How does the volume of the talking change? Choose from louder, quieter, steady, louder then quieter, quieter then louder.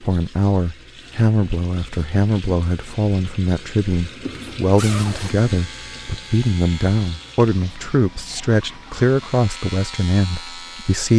steady.